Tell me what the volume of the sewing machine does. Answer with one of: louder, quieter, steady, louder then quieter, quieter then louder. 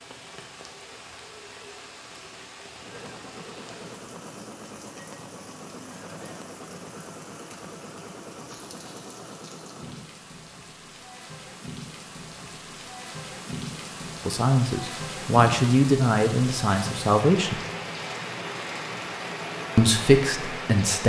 steady.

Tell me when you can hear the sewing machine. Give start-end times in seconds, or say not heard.
2.7-10.2.